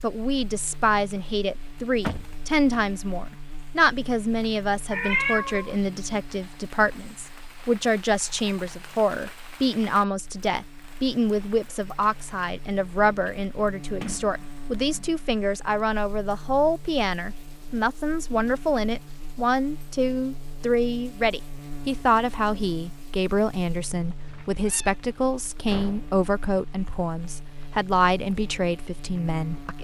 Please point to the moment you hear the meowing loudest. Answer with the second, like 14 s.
5 s.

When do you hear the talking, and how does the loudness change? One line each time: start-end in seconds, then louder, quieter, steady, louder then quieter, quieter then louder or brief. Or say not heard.
0.0-29.8 steady.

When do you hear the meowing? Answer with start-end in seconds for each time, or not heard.
4.9-6.5, 24.2-24.9.